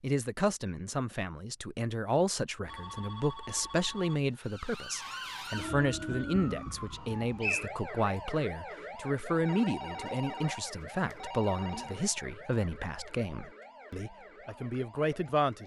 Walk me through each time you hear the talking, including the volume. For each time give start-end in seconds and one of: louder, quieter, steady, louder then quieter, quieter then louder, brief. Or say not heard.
0.0-15.6 steady.